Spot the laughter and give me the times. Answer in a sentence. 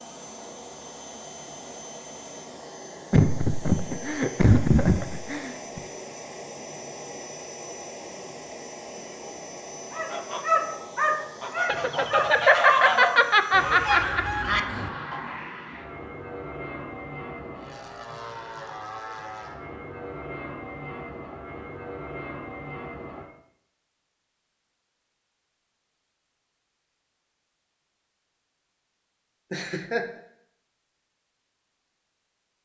The laughter can be heard from 3.1 to 5.8 s, from 11.7 to 14.2 s and from 29.5 to 30.1 s.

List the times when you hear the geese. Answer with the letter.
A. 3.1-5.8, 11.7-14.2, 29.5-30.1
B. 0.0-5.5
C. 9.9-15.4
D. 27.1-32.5
C.